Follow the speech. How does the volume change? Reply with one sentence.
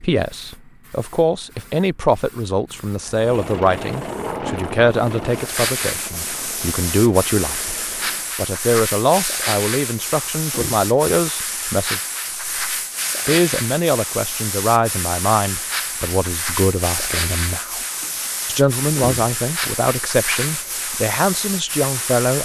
The loudness of the speech stays about the same.